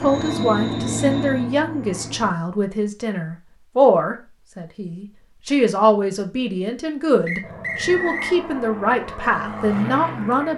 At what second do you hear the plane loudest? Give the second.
1 s.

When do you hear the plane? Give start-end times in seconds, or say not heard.
0.0-2.3, 7.4-10.5.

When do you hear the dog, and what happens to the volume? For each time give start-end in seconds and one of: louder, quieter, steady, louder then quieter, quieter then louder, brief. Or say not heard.
not heard.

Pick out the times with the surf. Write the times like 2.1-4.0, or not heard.
not heard.